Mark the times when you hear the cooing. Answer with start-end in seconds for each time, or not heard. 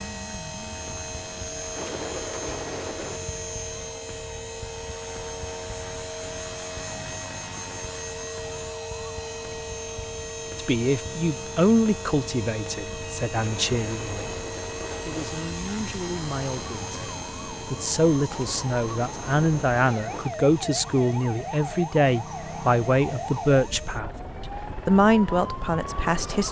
1.8-3.2, 13.3-15.3, 18.3-20.3.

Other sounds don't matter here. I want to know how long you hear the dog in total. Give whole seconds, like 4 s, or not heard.
not heard.